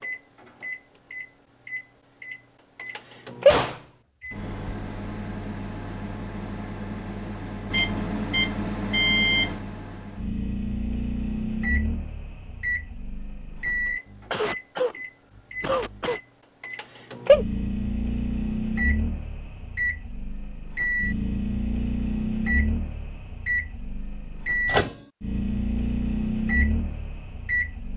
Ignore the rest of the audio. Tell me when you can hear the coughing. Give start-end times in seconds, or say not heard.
14.1-16.2.